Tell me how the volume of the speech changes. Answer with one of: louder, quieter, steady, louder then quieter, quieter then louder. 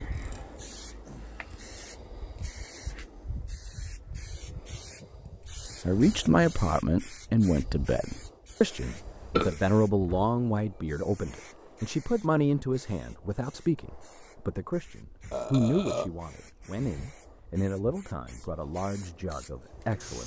quieter.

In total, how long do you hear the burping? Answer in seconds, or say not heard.
3 s.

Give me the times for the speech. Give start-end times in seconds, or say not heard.
5.8-20.2.